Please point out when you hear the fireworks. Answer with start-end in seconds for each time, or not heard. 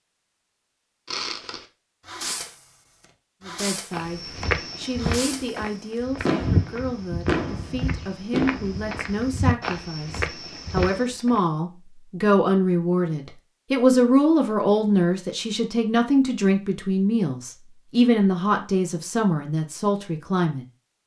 1.1-2.6, 3.4-4.0, 5.0-5.6, 6.2-8.8.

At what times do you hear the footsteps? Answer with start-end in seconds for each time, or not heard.
3.9-11.4.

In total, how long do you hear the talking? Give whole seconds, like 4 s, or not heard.
17 s.